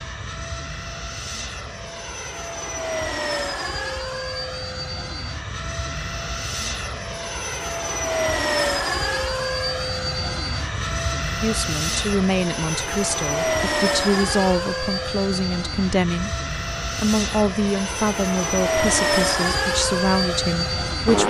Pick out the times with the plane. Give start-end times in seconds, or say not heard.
0.0-21.2.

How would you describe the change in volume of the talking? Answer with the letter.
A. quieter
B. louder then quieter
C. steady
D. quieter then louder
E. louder
C.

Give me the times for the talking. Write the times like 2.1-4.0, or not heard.
11.4-21.2.